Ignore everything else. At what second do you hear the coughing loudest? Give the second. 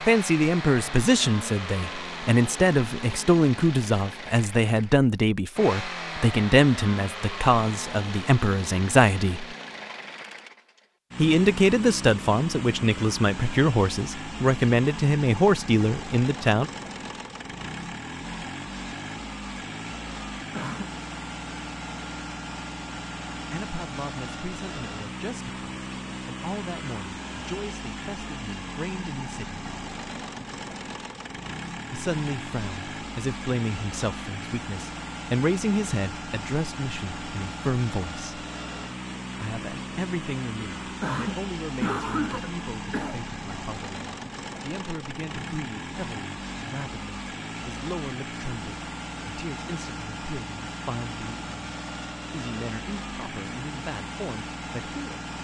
42 s.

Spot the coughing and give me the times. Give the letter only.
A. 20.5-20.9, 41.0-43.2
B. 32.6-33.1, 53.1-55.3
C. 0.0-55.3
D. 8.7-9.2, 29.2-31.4
A.